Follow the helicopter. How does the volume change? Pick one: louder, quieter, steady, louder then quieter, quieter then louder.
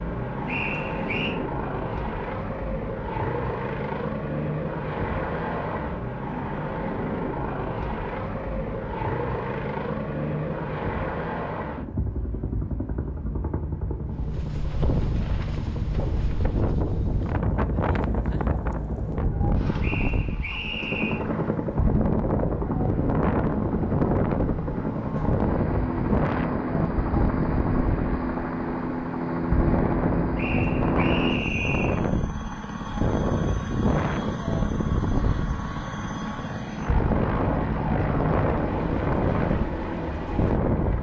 steady.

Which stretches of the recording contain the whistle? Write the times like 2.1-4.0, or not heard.
0.5-1.4, 19.8-21.2, 30.4-32.0.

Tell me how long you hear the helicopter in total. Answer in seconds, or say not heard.
41 s.